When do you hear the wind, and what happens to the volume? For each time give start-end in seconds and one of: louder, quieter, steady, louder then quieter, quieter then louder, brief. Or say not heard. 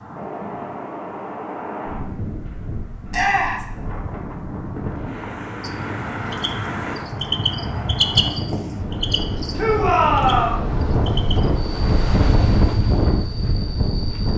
0.0-14.3 louder.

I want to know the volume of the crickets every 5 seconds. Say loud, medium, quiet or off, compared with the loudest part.
off, loud, medium.